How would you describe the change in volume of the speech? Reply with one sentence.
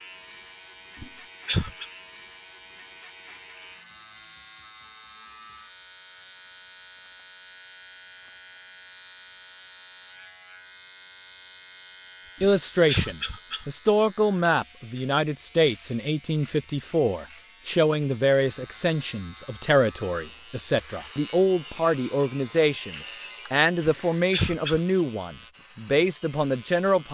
The loudness of the speech stays about the same.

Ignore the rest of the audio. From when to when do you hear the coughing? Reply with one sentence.
You can hear the coughing from 1.0 to 1.9 s, from 12.4 to 13.7 s and from 23.9 to 24.8 s.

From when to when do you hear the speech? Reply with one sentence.
You can hear the speech from 12.4 to 27.0 s.